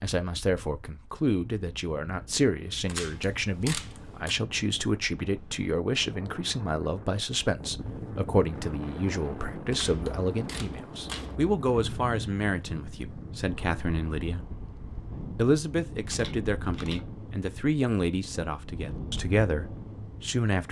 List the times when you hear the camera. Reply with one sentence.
You can hear the camera from 2.9 to 4.3 s, from 9.7 to 11.3 s and from 16.1 to 17.0 s.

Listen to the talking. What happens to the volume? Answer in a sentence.
The volume of the talking stays about the same.